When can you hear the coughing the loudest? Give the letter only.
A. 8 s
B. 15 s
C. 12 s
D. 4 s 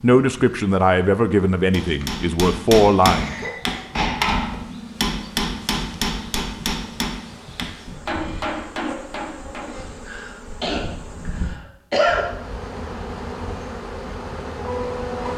C.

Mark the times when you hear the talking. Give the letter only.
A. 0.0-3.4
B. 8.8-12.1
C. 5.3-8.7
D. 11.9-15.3
A.